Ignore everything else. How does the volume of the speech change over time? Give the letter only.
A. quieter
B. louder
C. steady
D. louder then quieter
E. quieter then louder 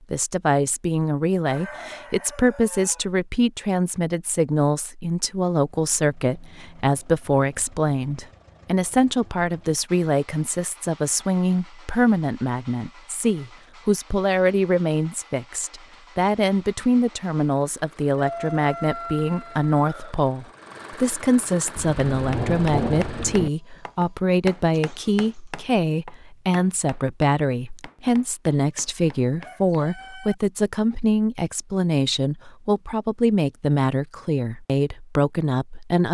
C.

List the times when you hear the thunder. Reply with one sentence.
You can hear the thunder from 21.8 to 23.5 s.